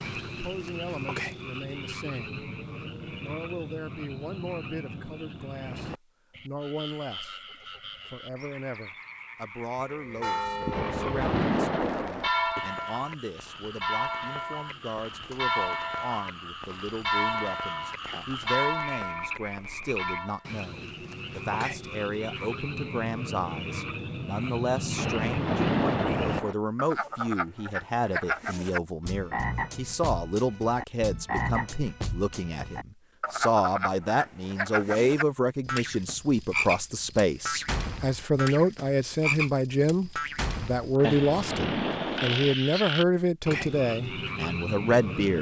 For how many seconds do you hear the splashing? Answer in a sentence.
The splashing can be heard for 5 seconds in total.